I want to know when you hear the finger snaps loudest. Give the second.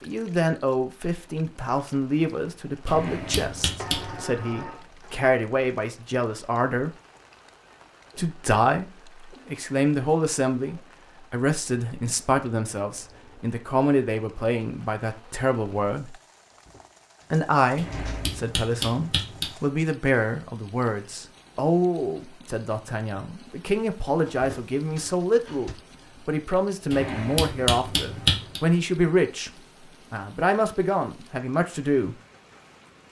28 s.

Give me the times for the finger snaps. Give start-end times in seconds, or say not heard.
2.9-4.2, 17.8-19.5, 26.9-28.6.